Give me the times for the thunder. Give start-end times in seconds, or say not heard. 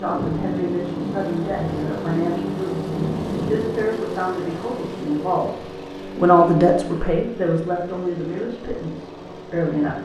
0.1-3.9.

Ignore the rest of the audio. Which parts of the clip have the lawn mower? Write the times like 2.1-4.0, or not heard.
0.0-9.9.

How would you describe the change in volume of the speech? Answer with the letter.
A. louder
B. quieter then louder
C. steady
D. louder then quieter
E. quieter
D.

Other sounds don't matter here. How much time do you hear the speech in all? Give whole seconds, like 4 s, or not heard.
10 s.